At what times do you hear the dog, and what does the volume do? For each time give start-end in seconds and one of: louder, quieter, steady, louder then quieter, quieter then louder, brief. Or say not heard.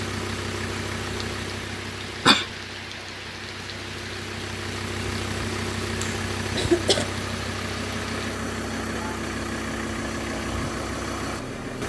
not heard.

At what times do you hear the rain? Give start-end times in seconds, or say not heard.
0.0-8.4.